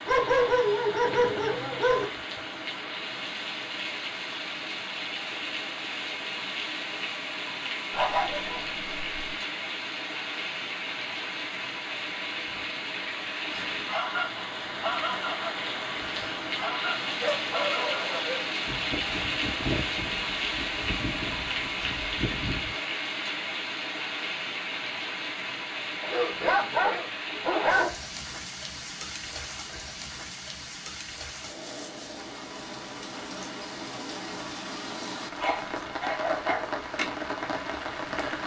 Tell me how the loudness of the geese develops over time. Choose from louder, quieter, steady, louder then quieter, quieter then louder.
quieter.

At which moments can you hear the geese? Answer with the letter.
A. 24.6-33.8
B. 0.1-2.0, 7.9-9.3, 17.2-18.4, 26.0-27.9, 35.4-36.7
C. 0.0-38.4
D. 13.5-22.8
D.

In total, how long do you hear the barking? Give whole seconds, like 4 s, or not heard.
8 s.